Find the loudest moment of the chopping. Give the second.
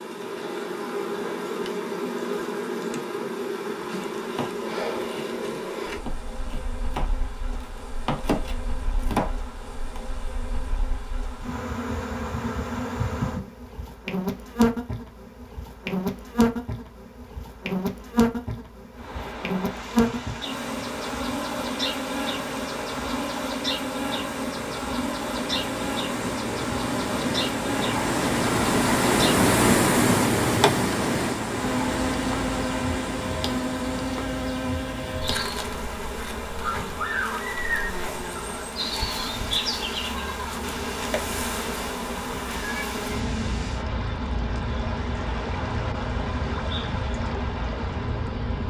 9 s.